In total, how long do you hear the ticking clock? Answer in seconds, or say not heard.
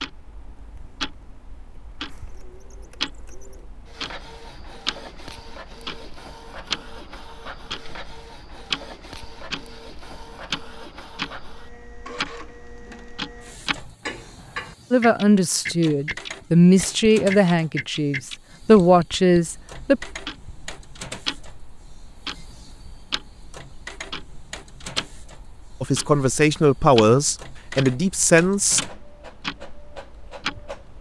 31 s.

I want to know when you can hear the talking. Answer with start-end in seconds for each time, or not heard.
14.9-20.0, 25.8-28.8.